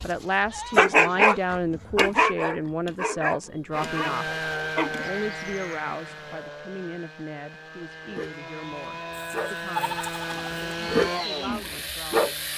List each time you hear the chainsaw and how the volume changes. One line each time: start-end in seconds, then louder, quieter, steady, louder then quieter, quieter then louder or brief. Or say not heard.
3.7-12.5 quieter then louder.